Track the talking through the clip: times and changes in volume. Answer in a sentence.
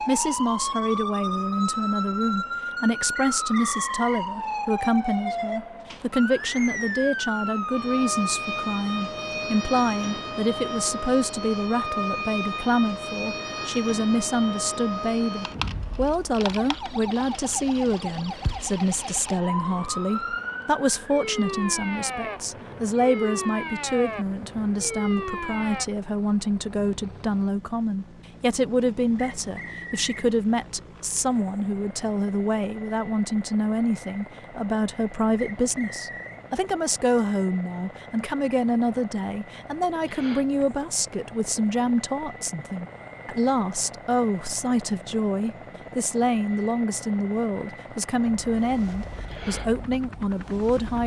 You can hear the talking from 0.1 to 51.0 s, at a steady volume.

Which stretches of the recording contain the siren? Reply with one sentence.
You can hear the siren from 0.0 to 25.9 s and from 48.4 to 51.0 s.